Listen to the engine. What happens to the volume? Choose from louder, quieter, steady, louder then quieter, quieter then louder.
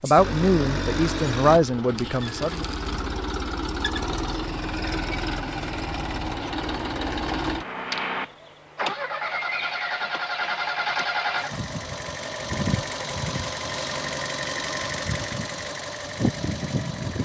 steady.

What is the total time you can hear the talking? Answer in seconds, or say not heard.
3 s.